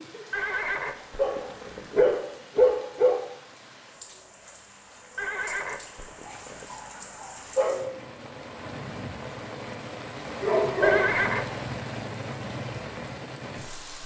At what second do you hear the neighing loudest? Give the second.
11 s.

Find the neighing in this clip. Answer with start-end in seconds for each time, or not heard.
0.3-2.2, 5.2-6.8, 10.8-11.6.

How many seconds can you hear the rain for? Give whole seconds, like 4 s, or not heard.
14 s.